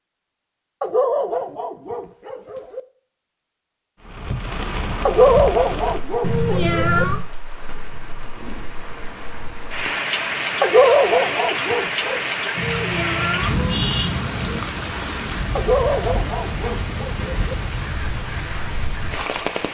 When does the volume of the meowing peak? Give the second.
7 s.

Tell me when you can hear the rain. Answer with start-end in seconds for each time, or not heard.
4.0-19.6.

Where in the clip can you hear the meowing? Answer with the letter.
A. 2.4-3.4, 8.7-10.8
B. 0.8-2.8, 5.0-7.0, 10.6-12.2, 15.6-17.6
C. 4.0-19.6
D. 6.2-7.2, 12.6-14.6
D.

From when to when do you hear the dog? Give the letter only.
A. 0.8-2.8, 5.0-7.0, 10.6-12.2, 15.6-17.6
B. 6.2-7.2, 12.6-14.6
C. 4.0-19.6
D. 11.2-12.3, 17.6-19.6
A.